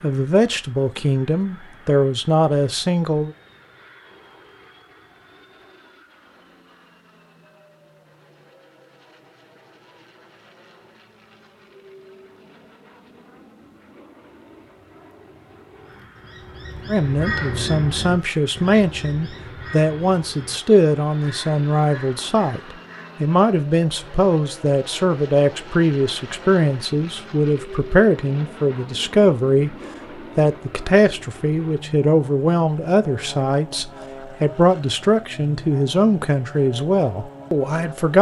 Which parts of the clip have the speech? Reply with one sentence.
You can hear the speech from 0.0 to 3.4 s, from 16.9 to 22.6 s, from 23.2 to 29.8 s and from 30.4 to 38.1 s.